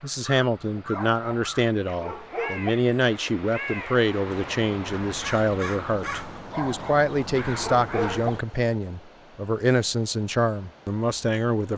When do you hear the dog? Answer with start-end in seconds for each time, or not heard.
0.8-2.7, 6.3-8.3.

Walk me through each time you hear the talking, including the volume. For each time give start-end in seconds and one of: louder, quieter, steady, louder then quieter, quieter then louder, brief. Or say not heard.
0.0-11.7 steady.